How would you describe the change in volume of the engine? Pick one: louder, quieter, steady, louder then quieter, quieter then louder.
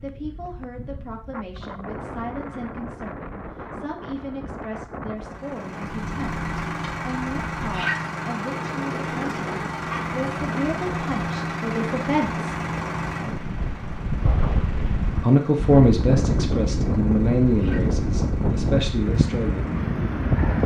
quieter.